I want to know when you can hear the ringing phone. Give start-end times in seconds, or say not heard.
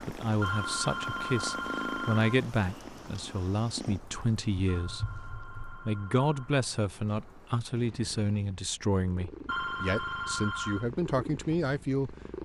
0.4-2.4, 4.7-6.7, 9.4-10.8.